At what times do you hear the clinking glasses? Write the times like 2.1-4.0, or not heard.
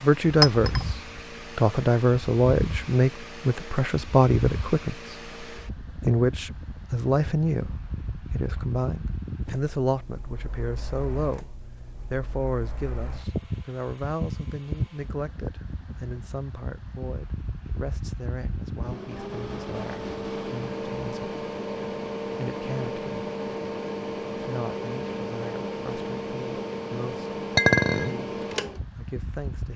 0.4-0.8, 27.6-28.1.